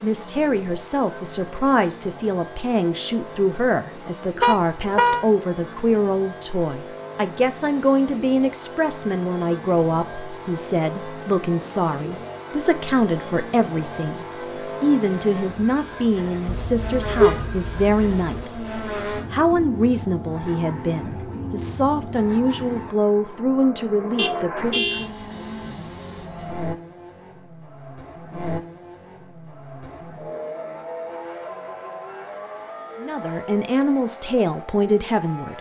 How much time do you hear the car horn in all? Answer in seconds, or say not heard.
4 s.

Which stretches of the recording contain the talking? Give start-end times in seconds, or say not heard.
0.0-25.1, 33.0-35.5.